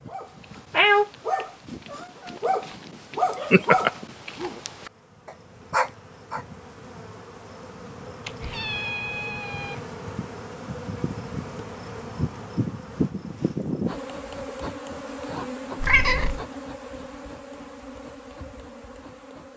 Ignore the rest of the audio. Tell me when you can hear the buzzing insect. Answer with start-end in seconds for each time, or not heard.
0.0-19.5.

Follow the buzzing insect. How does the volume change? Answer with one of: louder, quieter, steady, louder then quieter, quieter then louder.
louder then quieter.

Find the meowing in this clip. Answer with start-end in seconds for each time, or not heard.
0.7-2.3, 8.2-9.8, 15.8-16.4.